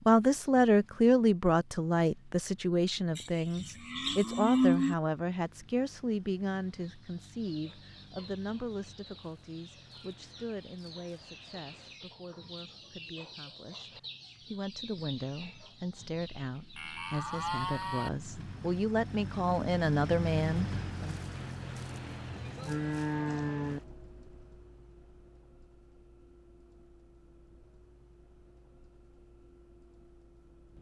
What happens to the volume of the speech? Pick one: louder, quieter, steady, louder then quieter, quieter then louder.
quieter then louder.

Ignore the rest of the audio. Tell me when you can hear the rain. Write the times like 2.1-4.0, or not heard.
not heard.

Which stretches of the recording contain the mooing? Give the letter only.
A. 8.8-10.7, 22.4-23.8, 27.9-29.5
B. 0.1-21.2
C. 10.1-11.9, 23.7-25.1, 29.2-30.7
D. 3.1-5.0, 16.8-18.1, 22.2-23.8
D.